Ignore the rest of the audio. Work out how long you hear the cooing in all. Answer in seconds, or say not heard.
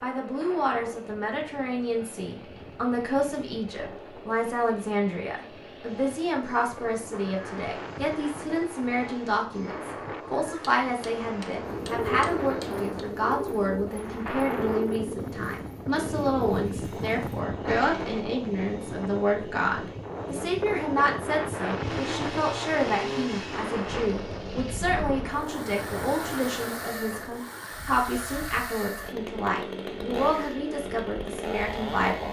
7 s.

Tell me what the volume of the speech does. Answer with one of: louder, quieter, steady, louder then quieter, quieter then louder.
steady.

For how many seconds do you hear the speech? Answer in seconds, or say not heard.
32 s.